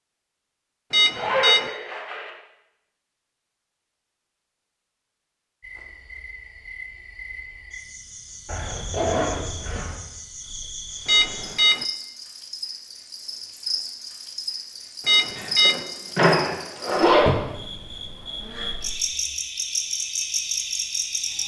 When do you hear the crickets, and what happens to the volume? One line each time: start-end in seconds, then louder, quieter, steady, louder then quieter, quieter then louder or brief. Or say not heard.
5.6-21.4 louder.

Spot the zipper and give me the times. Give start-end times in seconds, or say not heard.
1.1-2.3, 8.4-10.0, 15.3-17.4.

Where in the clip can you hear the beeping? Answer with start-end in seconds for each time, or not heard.
0.9-1.7, 11.1-11.8, 15.1-15.8.